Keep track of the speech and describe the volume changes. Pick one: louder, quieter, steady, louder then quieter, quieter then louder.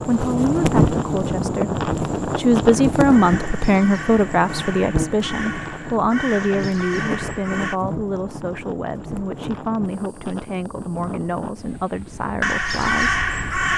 quieter.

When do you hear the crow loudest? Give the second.
13 s.